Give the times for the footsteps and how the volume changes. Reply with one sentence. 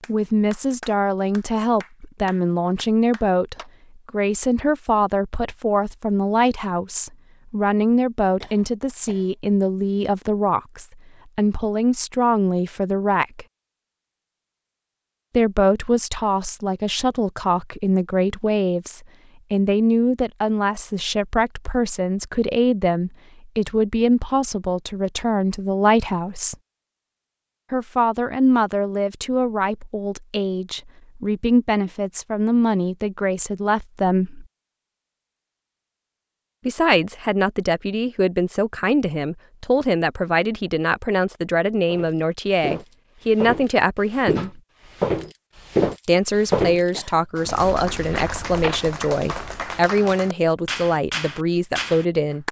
The footsteps can be heard from 41.9 to 49.6 s, getting louder then quieter.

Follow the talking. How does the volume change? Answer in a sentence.
The loudness of the talking stays about the same.